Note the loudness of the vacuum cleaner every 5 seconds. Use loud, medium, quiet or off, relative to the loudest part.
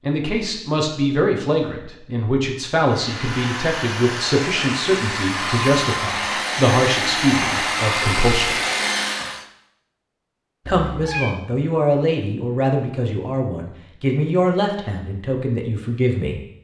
medium, loud, off, off.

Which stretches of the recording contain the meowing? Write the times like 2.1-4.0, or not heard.
10.7-11.3.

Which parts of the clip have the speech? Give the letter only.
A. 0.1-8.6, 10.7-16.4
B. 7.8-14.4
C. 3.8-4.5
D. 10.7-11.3
A.